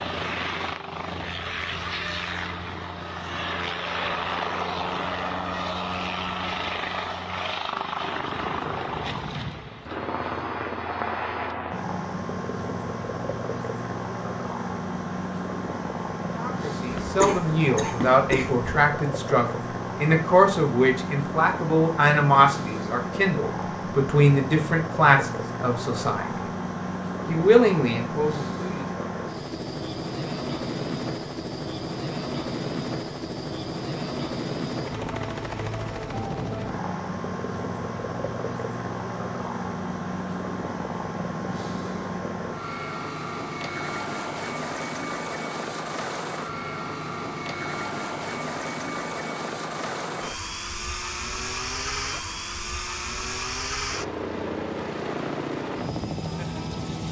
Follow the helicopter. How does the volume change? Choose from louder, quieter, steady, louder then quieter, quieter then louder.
steady.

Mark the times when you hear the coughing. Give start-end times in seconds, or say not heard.
16.9-18.6.